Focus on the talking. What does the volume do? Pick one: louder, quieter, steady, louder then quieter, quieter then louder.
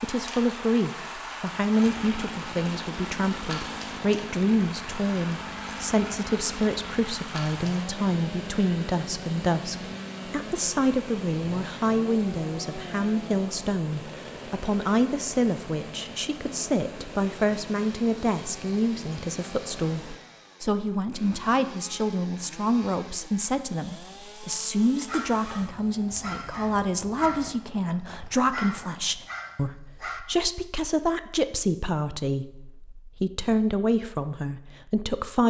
steady.